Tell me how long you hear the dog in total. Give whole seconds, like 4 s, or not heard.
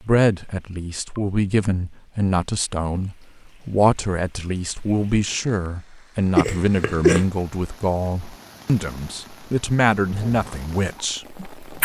2 s.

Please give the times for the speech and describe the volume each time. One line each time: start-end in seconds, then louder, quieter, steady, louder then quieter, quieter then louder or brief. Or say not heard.
0.1-11.8 steady.